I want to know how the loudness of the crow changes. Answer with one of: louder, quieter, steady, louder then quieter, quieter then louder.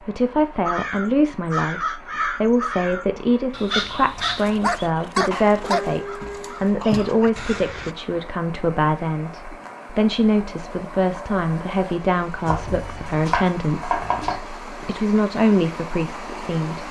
quieter.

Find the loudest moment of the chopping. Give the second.
14 s.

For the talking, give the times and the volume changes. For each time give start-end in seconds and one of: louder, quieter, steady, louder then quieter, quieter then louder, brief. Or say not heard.
0.1-16.8 steady.